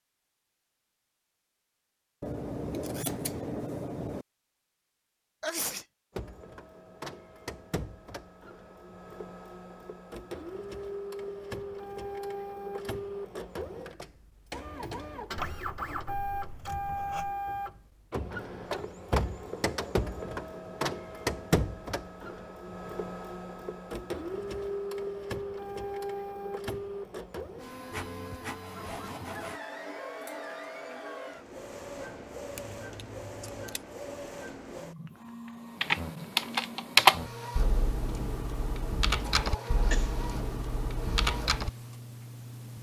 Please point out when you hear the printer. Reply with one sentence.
The printer can be heard from 6.1 to 42.7 s.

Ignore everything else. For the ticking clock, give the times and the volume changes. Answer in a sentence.
The ticking clock can't be heard in this clip.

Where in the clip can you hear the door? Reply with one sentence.
The door can't be heard in this clip.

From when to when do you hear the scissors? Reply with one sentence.
The scissors can be heard from 2.2 to 4.2 s, from 15.3 to 17.4 s and from 32.5 to 33.8 s.